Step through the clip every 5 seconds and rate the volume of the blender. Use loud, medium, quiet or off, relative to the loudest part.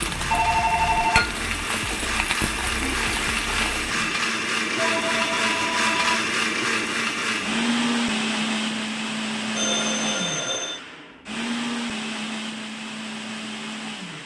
loud, loud, medium.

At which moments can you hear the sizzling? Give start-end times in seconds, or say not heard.
0.0-4.2.